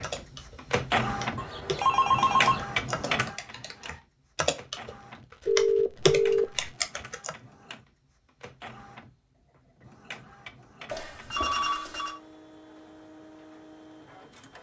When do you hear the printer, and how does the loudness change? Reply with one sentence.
You can hear the printer from 0.0 to 14.5 s, getting quieter.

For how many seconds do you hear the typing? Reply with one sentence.
You can hear the typing for 7 seconds altogether.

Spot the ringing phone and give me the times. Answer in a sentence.
You can hear the ringing phone from 1.4 to 2.6 s, from 5.5 to 6.7 s and from 10.9 to 12.2 s.